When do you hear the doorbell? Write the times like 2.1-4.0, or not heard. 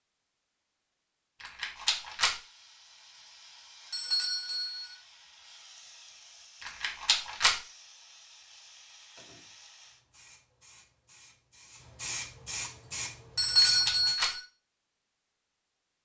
3.9-5.0, 13.3-14.4.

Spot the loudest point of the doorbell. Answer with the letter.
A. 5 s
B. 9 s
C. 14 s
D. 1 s
C.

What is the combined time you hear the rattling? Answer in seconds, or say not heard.
3 s.